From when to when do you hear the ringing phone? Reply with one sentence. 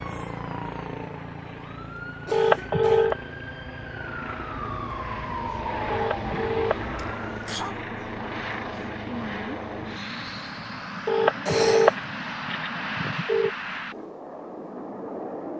You can hear the ringing phone from 2.3 to 3.1 s, from 5.9 to 6.9 s and from 11.1 to 13.5 s.